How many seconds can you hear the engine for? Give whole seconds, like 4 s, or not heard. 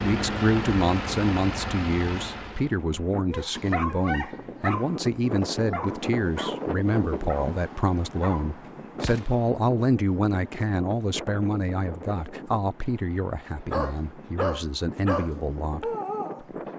3 s.